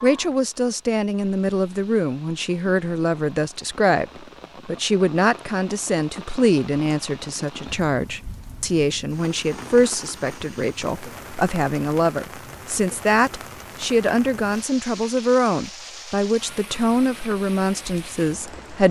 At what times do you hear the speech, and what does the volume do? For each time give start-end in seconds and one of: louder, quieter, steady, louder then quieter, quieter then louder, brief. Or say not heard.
0.0-18.8 steady.